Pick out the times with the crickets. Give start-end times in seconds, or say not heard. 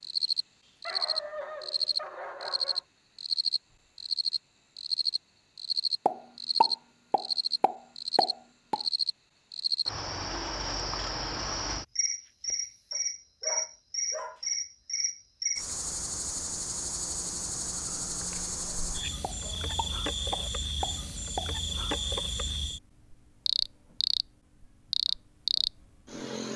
0.0-26.5.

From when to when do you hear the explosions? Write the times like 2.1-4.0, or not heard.
6.0-8.8, 19.2-22.0.